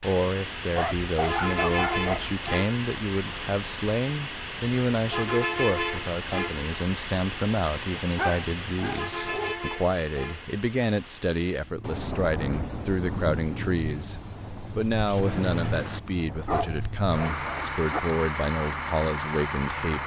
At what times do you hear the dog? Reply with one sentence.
You can hear the dog from 0.8 to 2.3 s, from 7.9 to 9.6 s and from 16.4 to 18.1 s.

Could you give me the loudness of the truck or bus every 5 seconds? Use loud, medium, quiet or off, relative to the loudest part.
loud, loud, medium, loud.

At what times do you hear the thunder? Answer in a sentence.
You can hear the thunder from 11.8 to 16.0 s.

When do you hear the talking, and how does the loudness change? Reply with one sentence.
You can hear the talking from 0.0 to 20.0 s, at a steady volume.